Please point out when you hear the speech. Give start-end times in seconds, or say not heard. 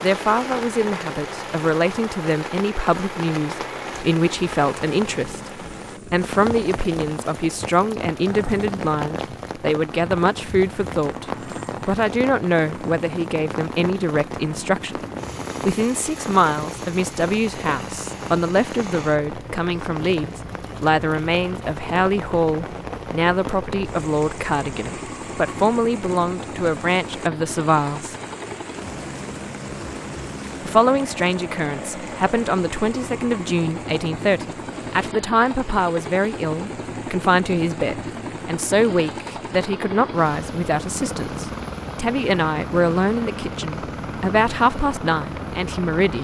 0.0-11.2, 11.8-15.0, 15.7-28.1, 30.6-46.2.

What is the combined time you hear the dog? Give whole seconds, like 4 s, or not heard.
not heard.